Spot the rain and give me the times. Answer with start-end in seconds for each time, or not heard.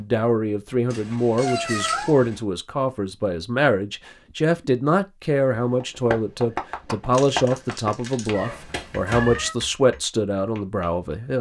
not heard.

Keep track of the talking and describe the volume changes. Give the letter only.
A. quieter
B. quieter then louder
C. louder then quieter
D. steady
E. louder
D.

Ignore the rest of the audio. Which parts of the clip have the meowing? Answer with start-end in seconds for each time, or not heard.
0.9-2.4, 8.3-9.6.